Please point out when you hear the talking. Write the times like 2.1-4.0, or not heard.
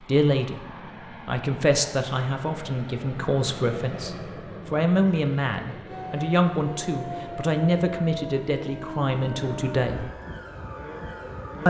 0.1-0.6, 1.2-10.1.